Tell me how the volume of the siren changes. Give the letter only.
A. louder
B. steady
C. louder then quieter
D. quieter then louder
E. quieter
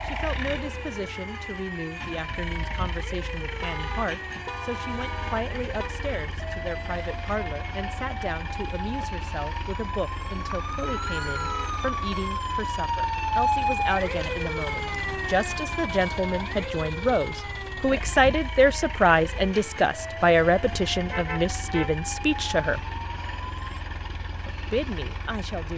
C.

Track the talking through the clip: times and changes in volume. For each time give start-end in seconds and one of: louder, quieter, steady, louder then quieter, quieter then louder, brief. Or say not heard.
0.1-22.8 louder
24.7-25.7 brief.